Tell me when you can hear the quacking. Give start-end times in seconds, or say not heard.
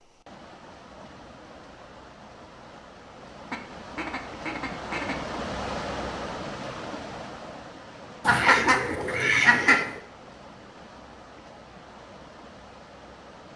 3.5-5.2, 8.2-10.0.